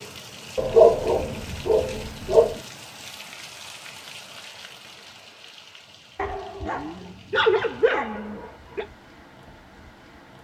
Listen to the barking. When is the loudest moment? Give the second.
1 s.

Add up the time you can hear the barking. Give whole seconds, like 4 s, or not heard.
5 s.